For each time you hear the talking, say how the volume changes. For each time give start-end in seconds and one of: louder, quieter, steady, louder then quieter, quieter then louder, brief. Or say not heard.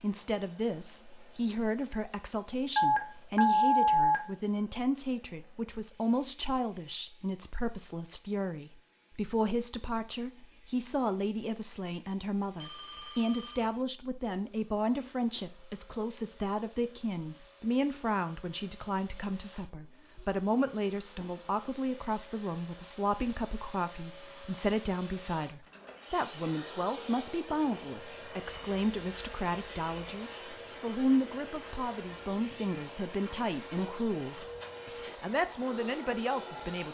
0.0-36.8 steady.